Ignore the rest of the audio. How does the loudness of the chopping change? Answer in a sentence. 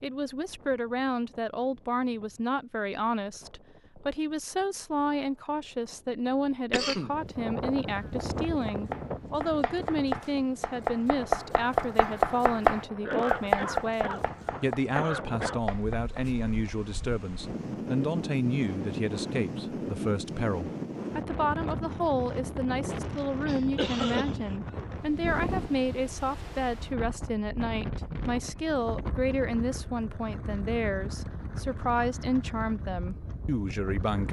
The volume of the chopping goes up, then down.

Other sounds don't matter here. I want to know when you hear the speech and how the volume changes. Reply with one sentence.
The speech can be heard from 0.0 to 34.2 s, at a steady volume.